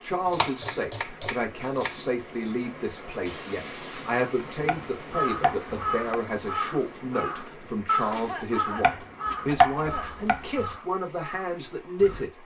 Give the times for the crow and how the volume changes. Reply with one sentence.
The crow can be heard from 5.0 to 12.2 s, getting quieter.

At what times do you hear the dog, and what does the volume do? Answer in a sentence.
You can't hear the dog here.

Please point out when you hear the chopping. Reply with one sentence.
The chopping can be heard from 0.3 to 1.9 s, from 4.6 to 6.2 s and from 8.8 to 10.8 s.